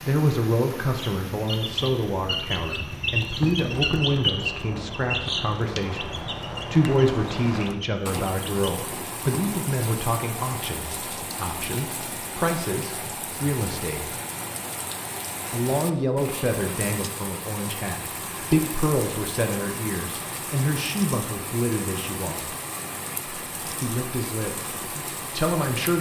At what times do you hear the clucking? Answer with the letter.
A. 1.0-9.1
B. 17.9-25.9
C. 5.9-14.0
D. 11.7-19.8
A.